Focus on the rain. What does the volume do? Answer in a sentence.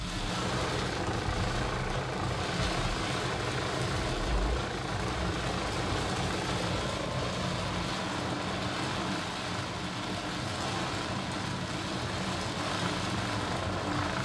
The loudness of the rain stays about the same.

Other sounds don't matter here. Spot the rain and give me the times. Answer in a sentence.
The rain can be heard from 0.0 to 14.1 s.